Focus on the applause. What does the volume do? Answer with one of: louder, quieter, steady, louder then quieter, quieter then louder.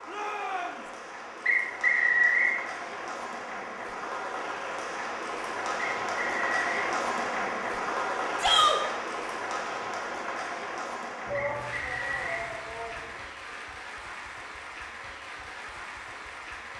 louder then quieter.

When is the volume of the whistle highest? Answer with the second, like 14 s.
2 s.